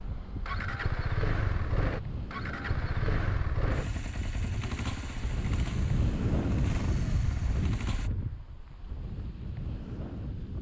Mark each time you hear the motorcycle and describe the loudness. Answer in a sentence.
The motorcycle can be heard from 0.0 to 8.1 s, getting quieter.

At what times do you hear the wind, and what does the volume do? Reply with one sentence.
You can hear the wind from 0.0 to 10.5 s, getting louder then quieter.